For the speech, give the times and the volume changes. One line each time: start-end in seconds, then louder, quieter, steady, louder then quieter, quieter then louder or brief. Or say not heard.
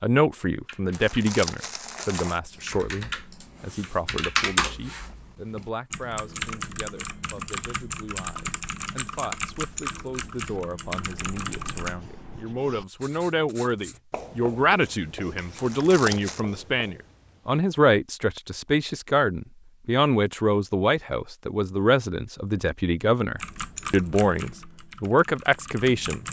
0.0-26.2 quieter then louder.